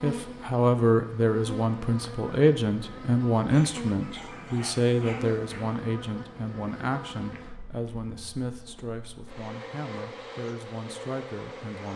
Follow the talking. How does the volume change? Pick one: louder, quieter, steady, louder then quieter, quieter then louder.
quieter.